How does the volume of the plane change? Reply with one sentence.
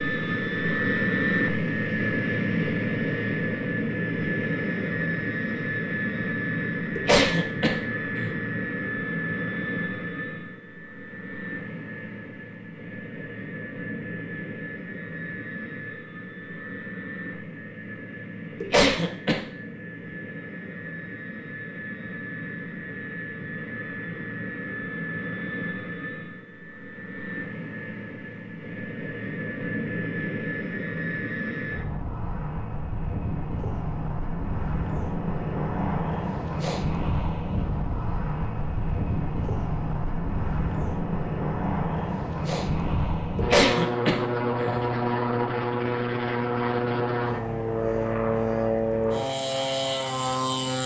The loudness of the plane goes down, then up.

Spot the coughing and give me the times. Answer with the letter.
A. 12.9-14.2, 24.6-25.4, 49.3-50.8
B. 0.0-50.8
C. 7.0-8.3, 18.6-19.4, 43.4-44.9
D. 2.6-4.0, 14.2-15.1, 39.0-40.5
C.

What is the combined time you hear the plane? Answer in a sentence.
You can hear the plane for 51 seconds altogether.